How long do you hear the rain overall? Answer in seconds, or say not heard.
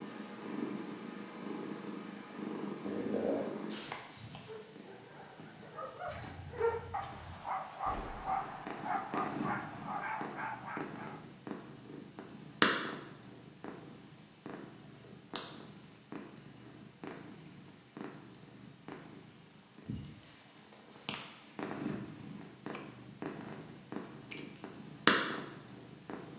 not heard.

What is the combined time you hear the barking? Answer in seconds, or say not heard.
7 s.